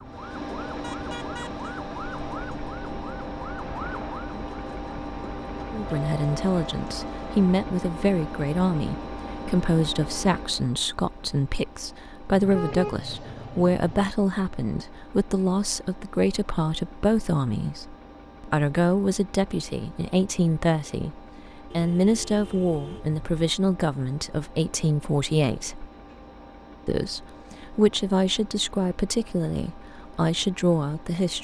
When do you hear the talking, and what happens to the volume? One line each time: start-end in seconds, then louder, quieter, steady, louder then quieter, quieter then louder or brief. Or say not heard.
5.7-25.9 steady
26.9-31.3 quieter then louder.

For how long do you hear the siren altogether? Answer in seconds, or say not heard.
7 s.